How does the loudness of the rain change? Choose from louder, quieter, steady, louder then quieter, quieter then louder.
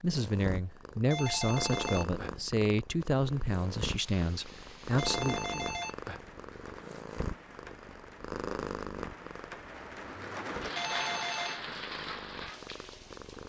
louder.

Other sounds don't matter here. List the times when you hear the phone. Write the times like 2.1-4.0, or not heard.
1.1-2.5, 5.0-6.3, 10.7-11.6.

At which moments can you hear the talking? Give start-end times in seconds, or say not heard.
0.0-5.7.